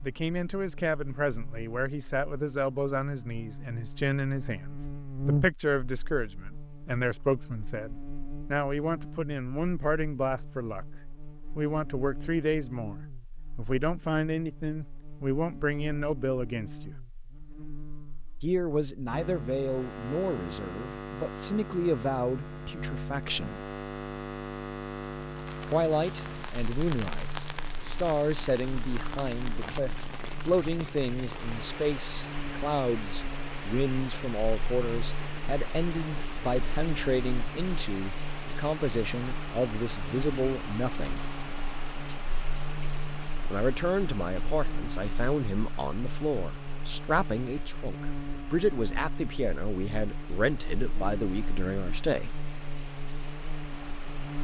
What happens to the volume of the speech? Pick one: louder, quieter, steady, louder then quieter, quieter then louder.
steady.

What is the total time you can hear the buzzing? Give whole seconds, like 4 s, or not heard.
54 s.